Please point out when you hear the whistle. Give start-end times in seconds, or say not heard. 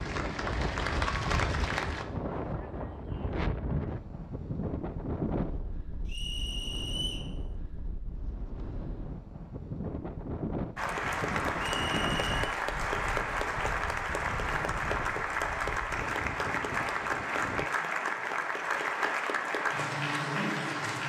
6.0-7.3, 11.8-12.5.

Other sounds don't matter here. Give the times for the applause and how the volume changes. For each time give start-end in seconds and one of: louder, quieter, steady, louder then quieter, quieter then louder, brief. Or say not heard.
0.0-2.0 brief
10.8-21.0 steady.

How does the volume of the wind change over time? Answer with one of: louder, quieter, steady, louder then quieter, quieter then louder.
quieter.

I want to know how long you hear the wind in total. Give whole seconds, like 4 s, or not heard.
18 s.